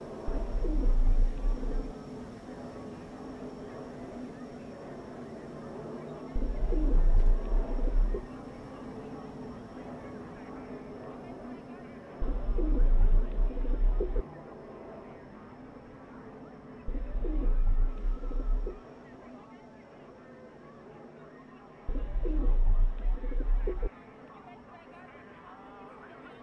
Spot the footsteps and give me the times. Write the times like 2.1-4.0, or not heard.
not heard.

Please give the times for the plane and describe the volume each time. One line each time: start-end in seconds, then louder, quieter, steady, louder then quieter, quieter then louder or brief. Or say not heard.
0.0-26.3 quieter.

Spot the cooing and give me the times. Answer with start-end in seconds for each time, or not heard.
0.2-1.8, 6.3-8.1, 12.2-14.2, 16.9-18.8, 21.9-23.9.